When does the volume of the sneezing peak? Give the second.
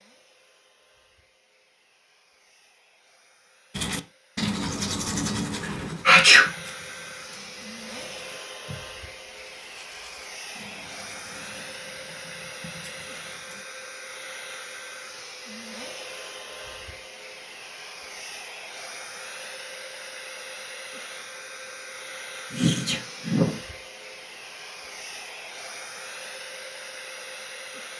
6 s.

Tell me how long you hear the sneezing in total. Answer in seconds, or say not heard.
2 s.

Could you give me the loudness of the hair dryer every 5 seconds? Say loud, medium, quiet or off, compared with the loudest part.
quiet, loud, loud, loud, loud, loud.